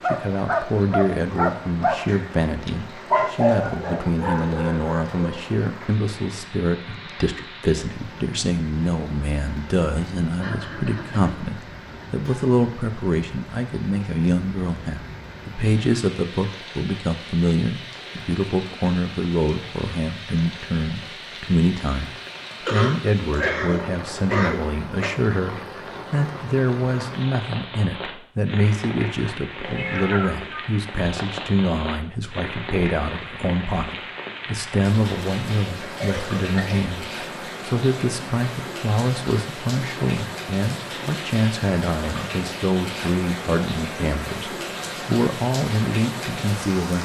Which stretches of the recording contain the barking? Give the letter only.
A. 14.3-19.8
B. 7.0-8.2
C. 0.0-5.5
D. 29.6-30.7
C.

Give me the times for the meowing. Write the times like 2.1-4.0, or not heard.
29.6-30.7.